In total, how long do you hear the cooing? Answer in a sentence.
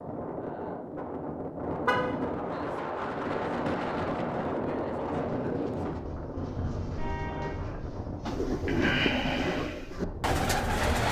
The cooing can be heard for 6 seconds in total.